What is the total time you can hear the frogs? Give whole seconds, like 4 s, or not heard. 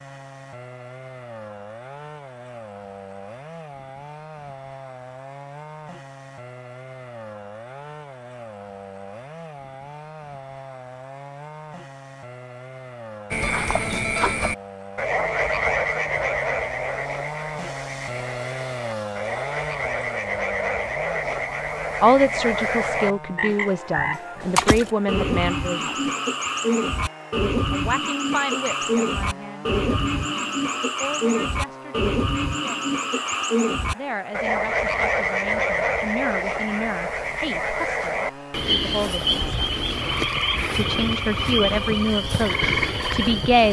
30 s.